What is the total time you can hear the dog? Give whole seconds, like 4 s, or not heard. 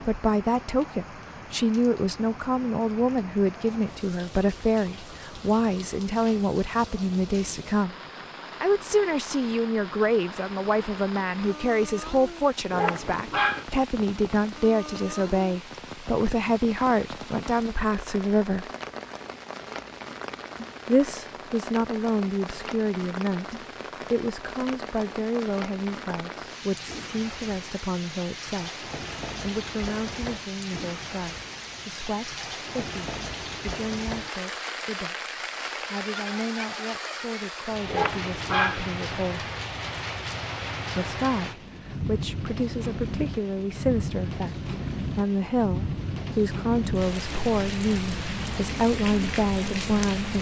2 s.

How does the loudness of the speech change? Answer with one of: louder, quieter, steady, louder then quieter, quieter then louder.
quieter then louder.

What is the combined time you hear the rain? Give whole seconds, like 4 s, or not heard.
50 s.